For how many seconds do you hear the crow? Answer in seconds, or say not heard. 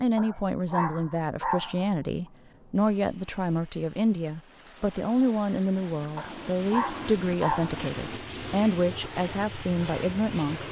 not heard.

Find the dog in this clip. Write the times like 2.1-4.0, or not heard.
0.1-1.9, 6.2-7.8.